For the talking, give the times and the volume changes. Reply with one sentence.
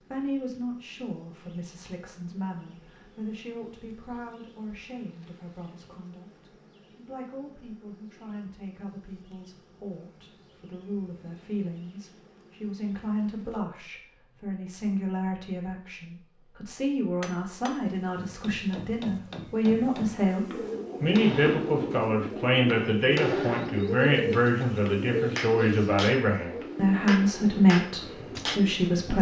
You can hear the talking from 0.1 to 29.1 s, getting louder.